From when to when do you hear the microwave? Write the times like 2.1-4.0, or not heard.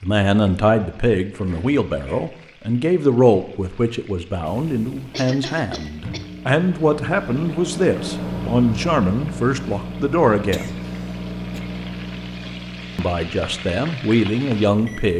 4.5-15.1.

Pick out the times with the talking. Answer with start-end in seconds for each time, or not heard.
0.0-10.8, 12.9-15.1.